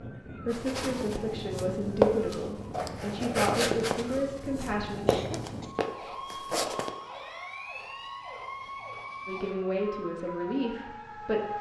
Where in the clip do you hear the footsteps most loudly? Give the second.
2 s.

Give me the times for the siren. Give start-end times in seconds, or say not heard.
0.0-11.5.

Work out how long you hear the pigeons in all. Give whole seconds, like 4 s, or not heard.
not heard.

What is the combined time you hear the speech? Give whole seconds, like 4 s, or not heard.
7 s.